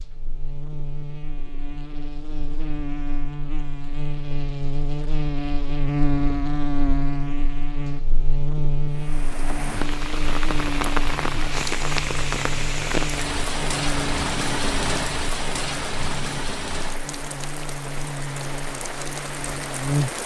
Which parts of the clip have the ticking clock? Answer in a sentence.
You can't hear the ticking clock here.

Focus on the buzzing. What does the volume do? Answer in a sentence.
The volume of the buzzing goes up, then down.